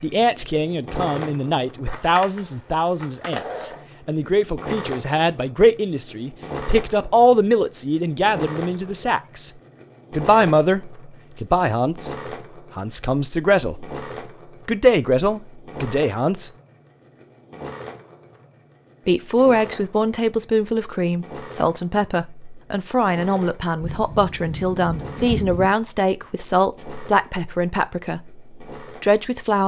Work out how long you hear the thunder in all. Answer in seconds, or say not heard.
2 s.